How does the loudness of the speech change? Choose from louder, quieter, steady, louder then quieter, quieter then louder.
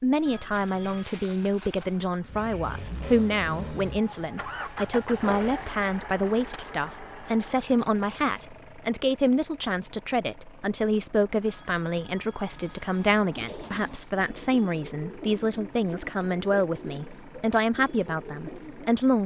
steady.